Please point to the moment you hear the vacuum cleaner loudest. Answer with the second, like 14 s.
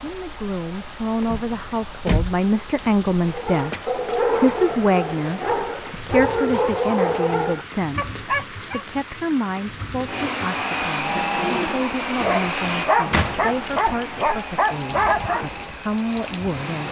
11 s.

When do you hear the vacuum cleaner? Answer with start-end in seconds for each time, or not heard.
10.1-16.8.